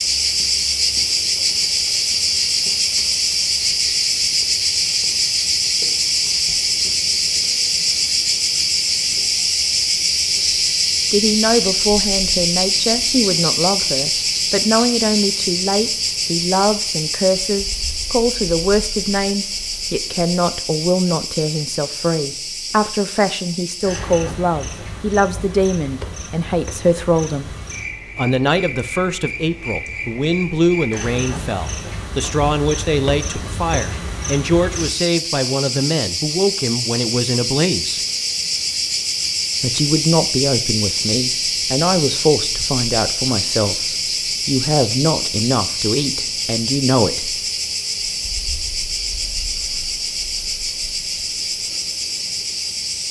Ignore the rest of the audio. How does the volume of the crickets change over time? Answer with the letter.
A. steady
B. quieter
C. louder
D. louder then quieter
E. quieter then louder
E.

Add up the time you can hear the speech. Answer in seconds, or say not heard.
34 s.